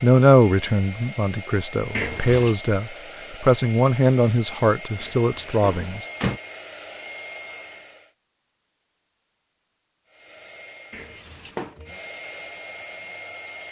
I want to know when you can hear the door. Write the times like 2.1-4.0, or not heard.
1.9-2.5, 5.0-6.4, 10.9-11.8.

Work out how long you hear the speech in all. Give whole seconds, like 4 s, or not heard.
6 s.